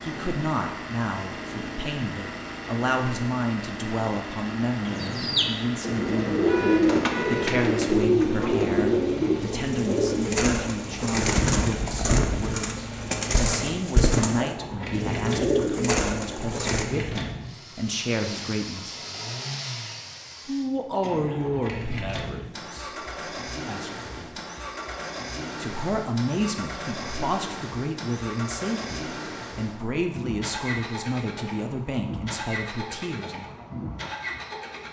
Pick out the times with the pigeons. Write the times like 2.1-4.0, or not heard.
4.8-16.9.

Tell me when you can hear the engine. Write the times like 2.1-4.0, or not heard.
0.0-34.8.